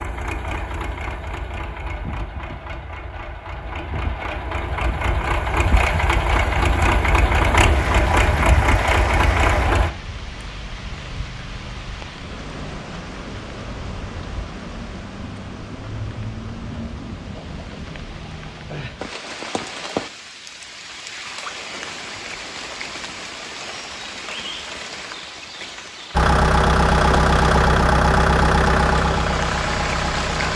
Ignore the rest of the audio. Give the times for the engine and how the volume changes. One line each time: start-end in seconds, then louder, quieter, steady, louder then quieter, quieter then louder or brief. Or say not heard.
0.0-9.9 louder
26.1-30.5 quieter.